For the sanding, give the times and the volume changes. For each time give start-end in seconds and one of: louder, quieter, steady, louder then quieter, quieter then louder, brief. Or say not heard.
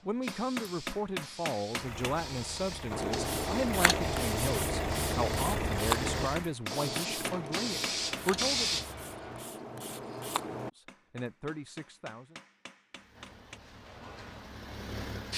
2.9-10.7 quieter.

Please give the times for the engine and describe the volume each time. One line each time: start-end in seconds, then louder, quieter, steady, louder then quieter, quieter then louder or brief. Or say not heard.
1.7-6.5 louder
12.9-15.3 brief.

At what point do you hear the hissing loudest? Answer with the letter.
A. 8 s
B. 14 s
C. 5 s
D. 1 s
A.